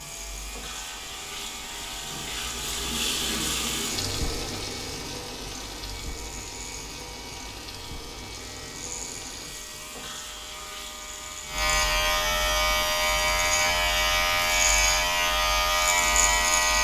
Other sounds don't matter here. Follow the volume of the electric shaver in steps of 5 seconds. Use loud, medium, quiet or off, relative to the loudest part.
quiet, quiet, loud, loud.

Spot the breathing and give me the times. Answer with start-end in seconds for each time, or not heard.
not heard.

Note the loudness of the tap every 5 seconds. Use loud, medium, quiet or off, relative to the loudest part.
loud, medium, medium, medium.